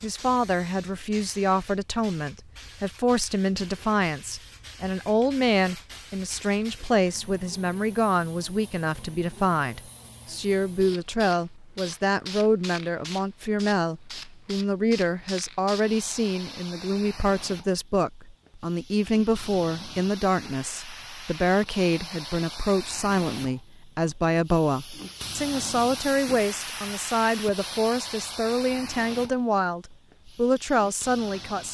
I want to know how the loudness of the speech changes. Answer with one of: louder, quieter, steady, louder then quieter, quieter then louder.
steady.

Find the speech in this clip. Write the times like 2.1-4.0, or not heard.
0.0-31.7.